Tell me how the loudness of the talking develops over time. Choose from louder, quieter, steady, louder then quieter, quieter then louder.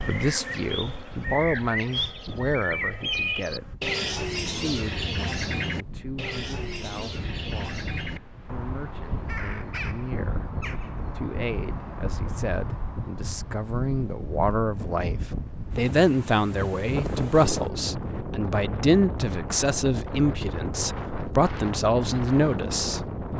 quieter then louder.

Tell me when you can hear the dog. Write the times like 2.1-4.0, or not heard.
not heard.